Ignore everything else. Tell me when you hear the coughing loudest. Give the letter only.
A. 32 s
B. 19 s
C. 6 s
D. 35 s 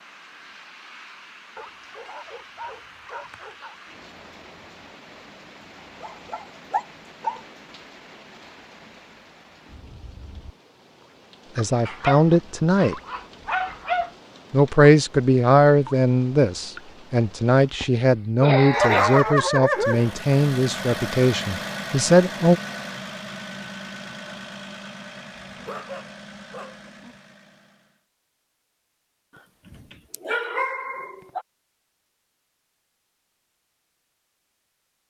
B.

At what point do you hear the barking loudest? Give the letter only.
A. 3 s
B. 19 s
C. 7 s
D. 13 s
B.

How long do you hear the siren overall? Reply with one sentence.
The siren can't be heard in this clip.